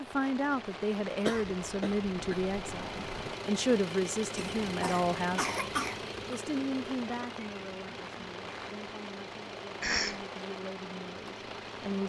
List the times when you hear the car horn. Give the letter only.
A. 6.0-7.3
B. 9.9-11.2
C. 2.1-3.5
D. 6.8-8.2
C.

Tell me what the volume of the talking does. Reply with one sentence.
The loudness of the talking goes down, then up.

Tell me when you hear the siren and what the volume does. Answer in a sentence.
The siren can't be heard in this clip.